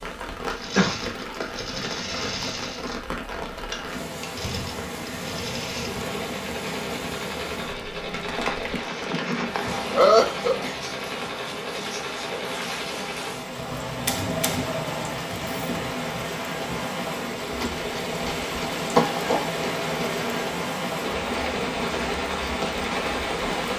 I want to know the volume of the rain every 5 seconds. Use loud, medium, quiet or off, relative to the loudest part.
medium, medium, medium, loud, loud.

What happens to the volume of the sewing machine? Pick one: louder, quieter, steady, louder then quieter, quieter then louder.
steady.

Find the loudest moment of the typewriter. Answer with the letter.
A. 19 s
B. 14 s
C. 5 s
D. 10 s
B.